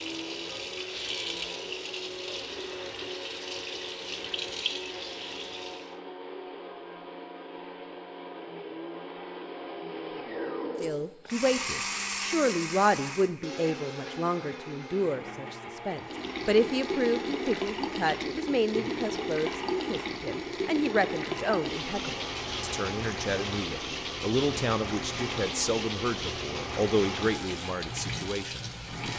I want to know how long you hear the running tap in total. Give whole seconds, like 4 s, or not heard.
19 s.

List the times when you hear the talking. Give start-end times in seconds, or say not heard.
10.8-29.1.